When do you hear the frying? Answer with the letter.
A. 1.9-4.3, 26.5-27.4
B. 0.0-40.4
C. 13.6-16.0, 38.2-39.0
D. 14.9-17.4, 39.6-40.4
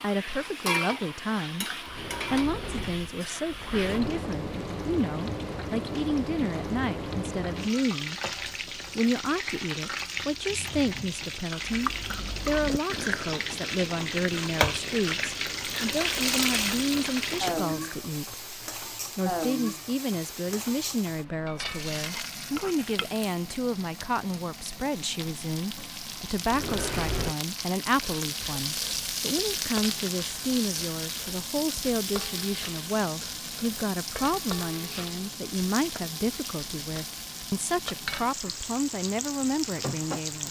B.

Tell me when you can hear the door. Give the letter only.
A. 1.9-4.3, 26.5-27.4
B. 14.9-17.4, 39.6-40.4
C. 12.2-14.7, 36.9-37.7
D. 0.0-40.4
A.